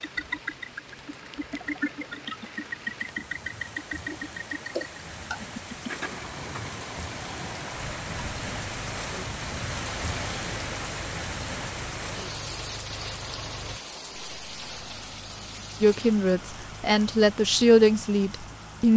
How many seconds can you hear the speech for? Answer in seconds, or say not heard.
3 s.